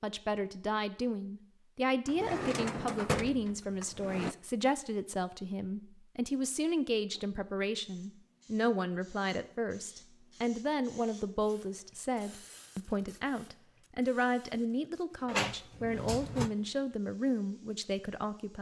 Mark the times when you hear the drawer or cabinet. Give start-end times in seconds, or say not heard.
2.0-4.3, 15.2-16.5.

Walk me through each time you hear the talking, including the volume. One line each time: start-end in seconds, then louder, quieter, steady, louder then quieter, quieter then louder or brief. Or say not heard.
0.0-18.5 steady.